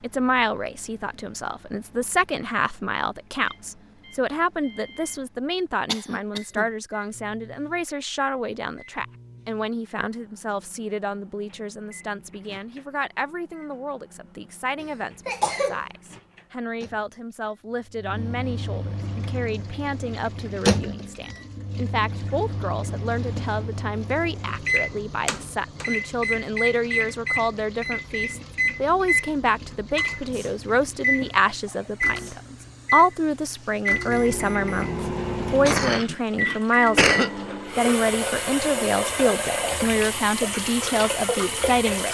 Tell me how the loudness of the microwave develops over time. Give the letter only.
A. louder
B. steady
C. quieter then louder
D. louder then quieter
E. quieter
A.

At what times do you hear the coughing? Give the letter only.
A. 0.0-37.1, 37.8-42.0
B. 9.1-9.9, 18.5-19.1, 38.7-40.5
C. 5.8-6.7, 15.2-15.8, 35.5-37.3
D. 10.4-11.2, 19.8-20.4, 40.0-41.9
C.